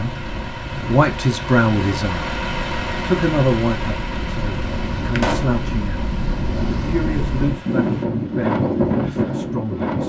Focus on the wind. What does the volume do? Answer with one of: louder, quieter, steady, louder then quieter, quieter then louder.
louder.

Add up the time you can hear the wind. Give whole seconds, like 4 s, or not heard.
10 s.